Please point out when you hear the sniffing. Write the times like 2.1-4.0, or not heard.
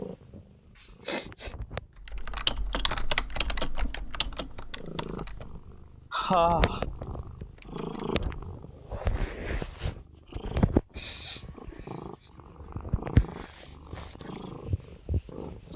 0.8-1.6, 6.1-6.8, 10.9-12.3.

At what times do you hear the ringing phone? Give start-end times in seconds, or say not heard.
not heard.